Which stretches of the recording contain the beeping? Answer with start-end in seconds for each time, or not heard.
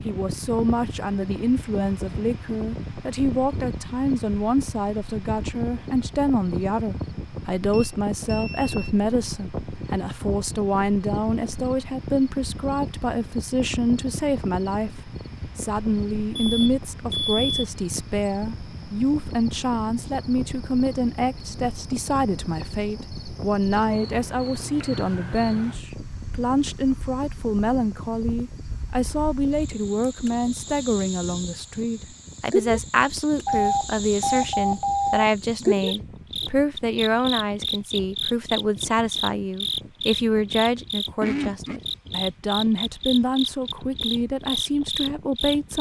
7.7-8.9, 16.4-17.5, 33.5-35.3.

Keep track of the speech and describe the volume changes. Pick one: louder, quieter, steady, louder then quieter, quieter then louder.
steady.